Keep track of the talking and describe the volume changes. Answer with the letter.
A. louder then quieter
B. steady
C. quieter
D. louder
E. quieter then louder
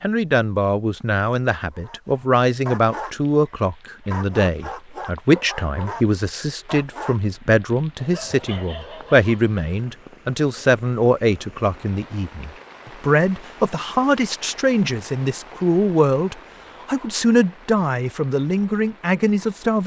B.